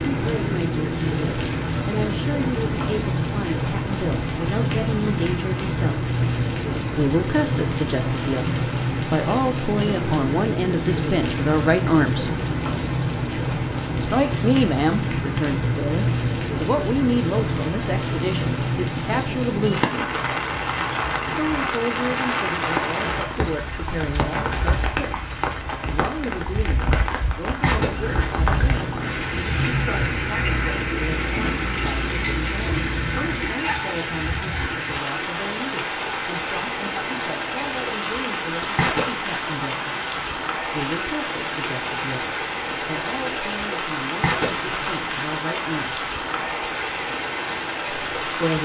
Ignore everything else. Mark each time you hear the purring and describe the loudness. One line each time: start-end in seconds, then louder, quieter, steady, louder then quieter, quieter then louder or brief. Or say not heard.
27.5-48.5 quieter then louder.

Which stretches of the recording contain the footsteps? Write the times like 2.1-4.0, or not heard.
not heard.